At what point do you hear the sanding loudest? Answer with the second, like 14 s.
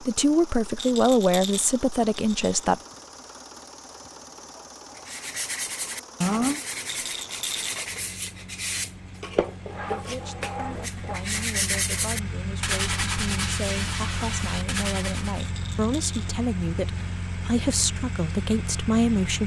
6 s.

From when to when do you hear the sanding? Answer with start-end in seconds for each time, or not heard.
4.9-15.5.